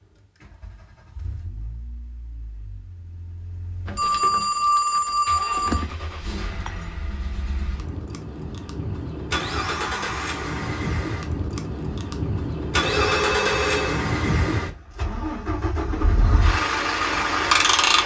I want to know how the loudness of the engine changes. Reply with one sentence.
The loudness of the engine goes up.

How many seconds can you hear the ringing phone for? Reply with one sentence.
The ringing phone can be heard for 3 seconds in total.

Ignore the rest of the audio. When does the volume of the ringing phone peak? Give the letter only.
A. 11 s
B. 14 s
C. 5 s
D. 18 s
C.